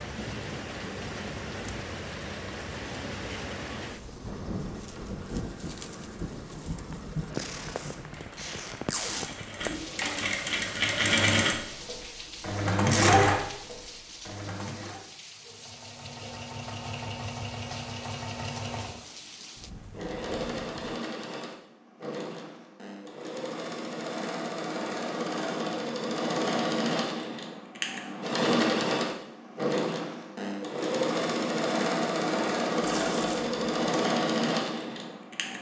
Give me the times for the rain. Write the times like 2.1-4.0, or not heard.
0.0-21.0.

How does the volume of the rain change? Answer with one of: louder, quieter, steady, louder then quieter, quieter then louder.
quieter.